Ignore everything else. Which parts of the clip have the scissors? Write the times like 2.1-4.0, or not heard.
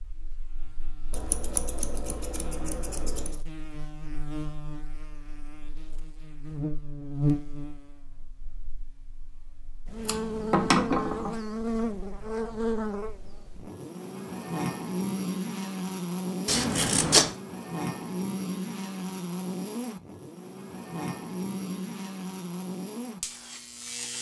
1.1-3.4, 10.0-11.3, 16.4-17.3.